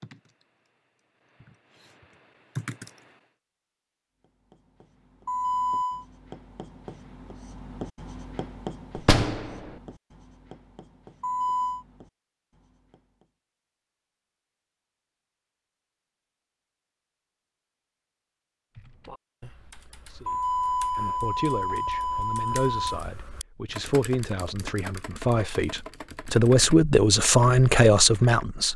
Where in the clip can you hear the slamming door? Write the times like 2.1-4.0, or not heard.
8.9-9.7.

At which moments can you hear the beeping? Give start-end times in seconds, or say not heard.
5.2-6.0, 11.2-11.8, 20.2-23.0.